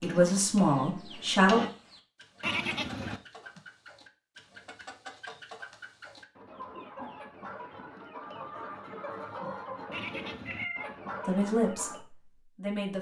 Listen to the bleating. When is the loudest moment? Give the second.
3 s.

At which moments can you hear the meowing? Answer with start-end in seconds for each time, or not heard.
10.4-10.9.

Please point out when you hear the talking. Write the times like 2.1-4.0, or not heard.
0.0-1.6, 11.2-12.9.